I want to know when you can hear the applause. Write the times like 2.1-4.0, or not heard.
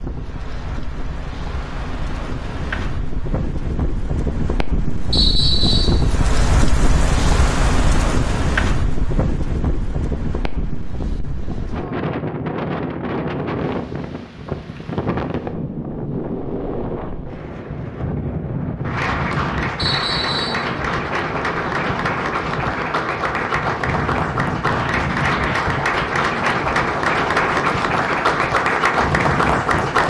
18.8-30.0.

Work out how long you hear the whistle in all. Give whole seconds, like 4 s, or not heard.
2 s.